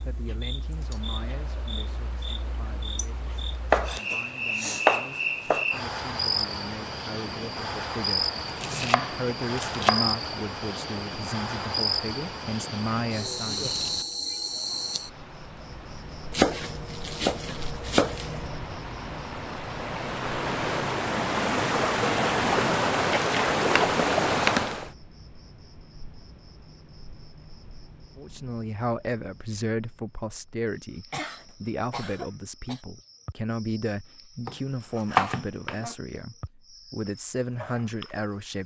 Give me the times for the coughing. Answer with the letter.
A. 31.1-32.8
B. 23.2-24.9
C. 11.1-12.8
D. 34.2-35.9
A.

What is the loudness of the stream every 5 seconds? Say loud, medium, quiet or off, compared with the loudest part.
quiet, quiet, quiet, quiet, loud, off, off, off.